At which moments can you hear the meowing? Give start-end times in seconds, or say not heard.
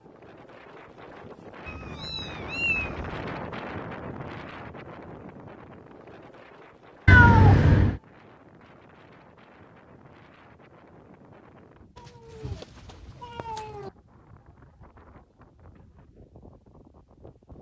1.6-3.2, 7.0-8.0, 11.9-13.9.